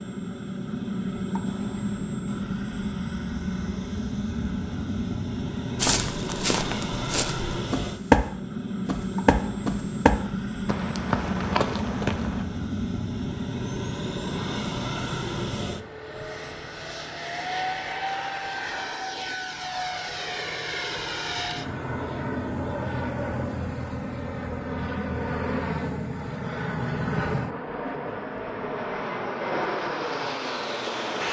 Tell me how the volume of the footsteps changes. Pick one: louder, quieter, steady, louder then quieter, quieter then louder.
louder then quieter.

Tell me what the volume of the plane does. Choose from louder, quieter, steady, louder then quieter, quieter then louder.
steady.